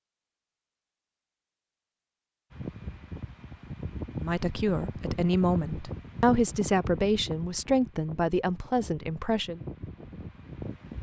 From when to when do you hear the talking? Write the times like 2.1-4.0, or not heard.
4.2-9.6.